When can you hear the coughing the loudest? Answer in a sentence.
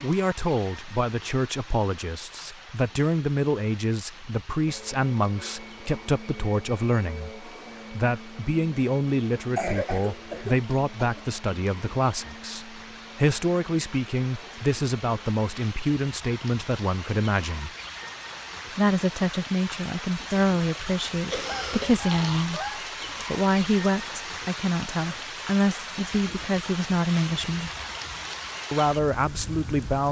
The volume of the coughing peaks at 10 seconds.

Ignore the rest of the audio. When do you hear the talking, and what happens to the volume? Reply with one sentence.
You can hear the talking from 0.0 to 17.7 s, at a steady volume; from 18.8 to 27.7 s, at a steady volume; and briefly from 28.7 to 30.0 s.